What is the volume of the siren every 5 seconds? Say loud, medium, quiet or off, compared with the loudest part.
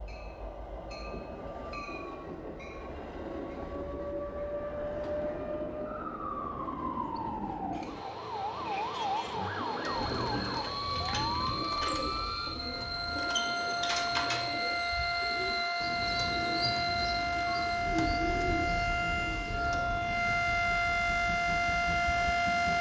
medium, medium, medium, loud, loud.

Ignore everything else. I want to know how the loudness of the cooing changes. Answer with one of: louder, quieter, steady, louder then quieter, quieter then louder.
steady.